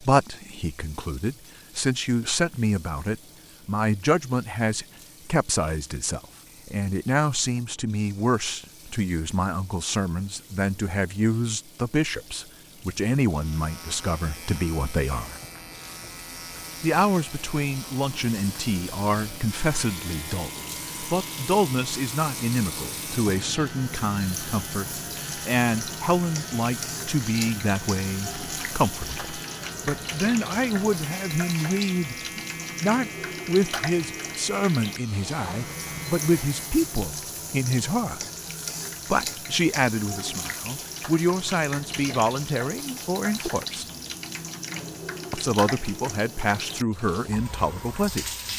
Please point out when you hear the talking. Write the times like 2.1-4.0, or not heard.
0.0-15.4, 16.8-38.2, 39.1-43.9, 45.3-48.2.